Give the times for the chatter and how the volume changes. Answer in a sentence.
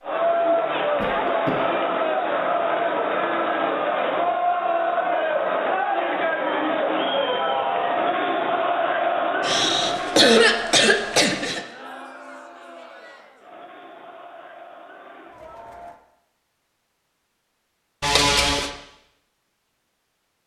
The chatter can be heard from 0.0 to 16.0 s, getting quieter.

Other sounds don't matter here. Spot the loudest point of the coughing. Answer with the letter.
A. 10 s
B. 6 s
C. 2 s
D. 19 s
A.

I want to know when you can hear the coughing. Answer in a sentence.
The coughing can be heard from 0.9 to 1.6 s, from 9.4 to 11.6 s and from 18.0 to 18.7 s.